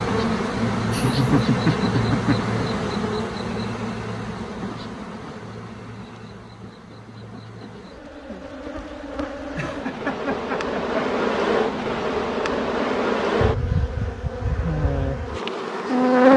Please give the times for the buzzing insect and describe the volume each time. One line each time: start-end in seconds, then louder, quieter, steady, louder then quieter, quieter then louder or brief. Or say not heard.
0.0-16.3 quieter then louder.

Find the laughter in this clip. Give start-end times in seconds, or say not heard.
0.9-2.5, 9.6-11.0.